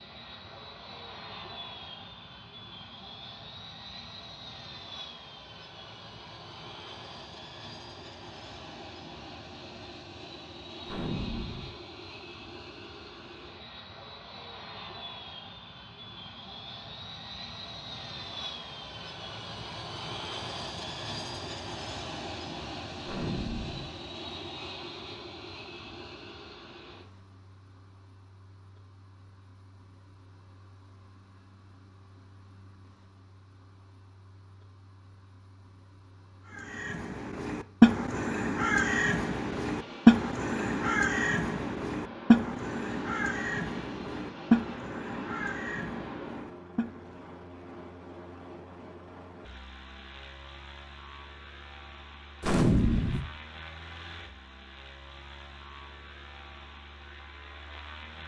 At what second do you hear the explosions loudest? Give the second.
53 s.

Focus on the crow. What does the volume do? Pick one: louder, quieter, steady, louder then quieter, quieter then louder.
quieter.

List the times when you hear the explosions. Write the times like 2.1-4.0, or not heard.
10.8-11.7, 23.1-23.9, 52.4-53.2.